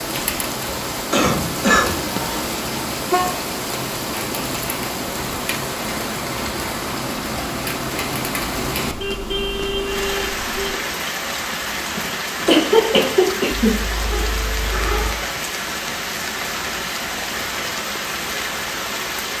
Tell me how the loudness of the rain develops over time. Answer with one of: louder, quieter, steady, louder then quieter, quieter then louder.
steady.